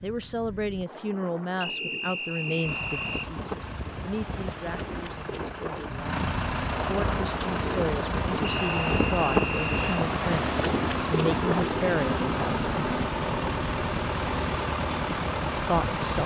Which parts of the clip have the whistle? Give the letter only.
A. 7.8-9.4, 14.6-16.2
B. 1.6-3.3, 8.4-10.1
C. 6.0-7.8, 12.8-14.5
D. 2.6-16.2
B.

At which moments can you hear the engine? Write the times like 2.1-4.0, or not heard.
2.6-16.2.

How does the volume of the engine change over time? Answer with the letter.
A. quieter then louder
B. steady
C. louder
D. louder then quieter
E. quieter
C.